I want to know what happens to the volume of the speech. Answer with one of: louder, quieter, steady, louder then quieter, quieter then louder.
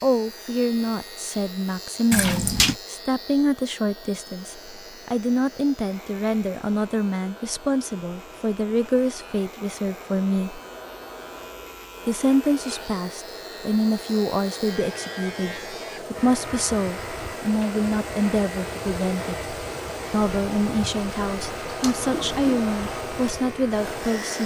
steady.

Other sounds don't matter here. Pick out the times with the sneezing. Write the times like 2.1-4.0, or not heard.
not heard.